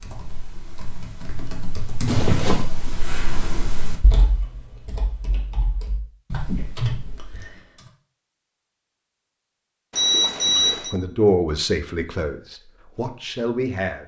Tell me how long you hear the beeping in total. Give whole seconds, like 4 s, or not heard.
2 s.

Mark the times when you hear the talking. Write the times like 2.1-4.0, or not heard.
10.4-14.0.